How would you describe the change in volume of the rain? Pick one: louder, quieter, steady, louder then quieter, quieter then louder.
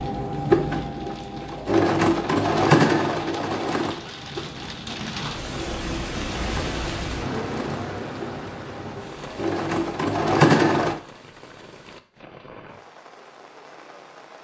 louder then quieter.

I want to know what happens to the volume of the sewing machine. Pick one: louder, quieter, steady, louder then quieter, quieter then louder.
quieter then louder.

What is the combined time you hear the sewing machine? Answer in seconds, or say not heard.
11 s.